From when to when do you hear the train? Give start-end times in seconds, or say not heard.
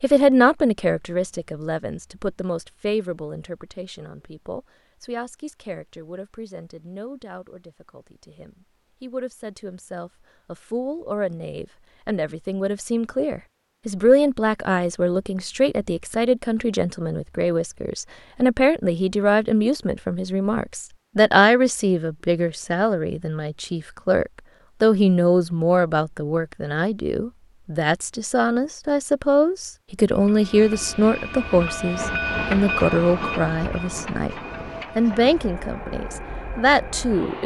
30.1-37.4.